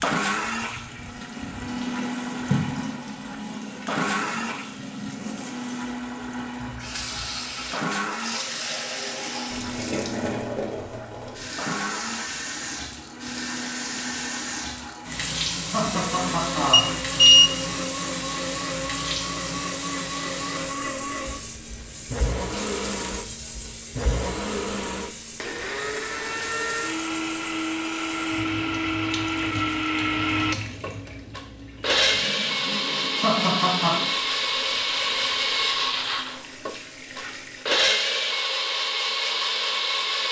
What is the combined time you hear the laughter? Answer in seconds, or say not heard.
2 s.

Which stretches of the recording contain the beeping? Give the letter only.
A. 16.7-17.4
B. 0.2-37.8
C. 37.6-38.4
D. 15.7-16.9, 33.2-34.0
A.